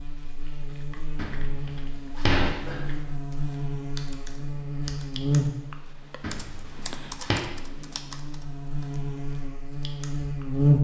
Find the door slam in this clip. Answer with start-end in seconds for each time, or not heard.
1.1-3.1, 6.2-7.4.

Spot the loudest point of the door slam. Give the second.
2 s.